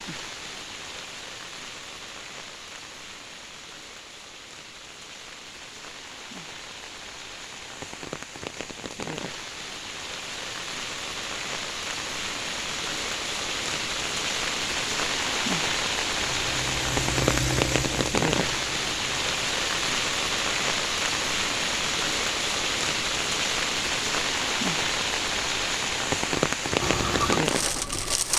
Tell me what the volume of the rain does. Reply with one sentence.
The volume of the rain goes up.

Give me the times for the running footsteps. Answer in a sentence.
You can't hear the running footsteps here.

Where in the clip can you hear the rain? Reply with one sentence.
You can hear the rain from 0.0 to 28.3 s.